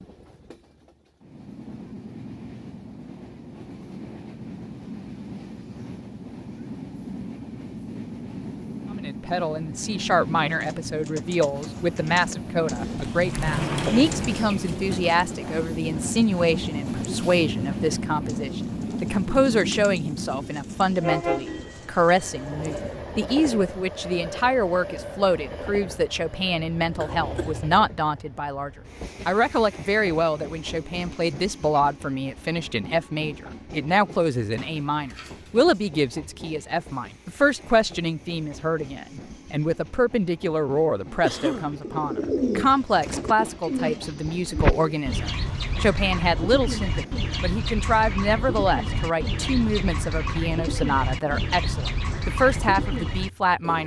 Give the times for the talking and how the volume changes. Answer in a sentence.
You can hear the talking from 8.9 to 53.8 s, at a steady volume.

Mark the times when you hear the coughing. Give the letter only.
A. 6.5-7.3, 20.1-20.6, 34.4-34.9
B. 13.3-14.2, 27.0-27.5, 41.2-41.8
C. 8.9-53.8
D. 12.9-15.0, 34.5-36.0
B.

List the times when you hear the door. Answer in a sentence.
You can hear the door from 12.9 to 15.0 s and from 34.5 to 36.0 s.